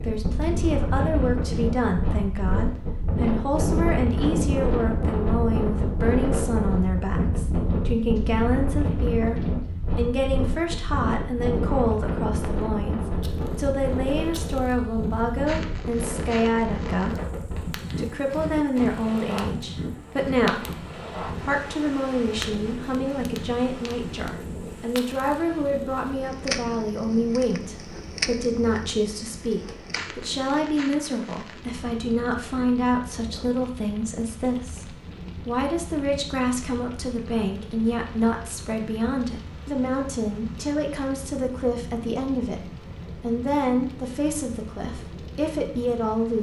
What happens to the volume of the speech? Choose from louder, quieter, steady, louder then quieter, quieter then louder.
steady.